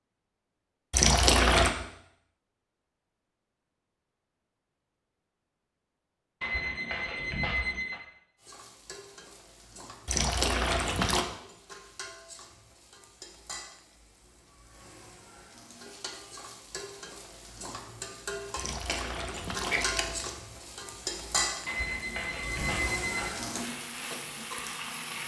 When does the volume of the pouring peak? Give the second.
1 s.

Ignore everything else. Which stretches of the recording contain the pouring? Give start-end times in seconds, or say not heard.
0.9-1.7, 10.1-11.2, 18.6-20.4.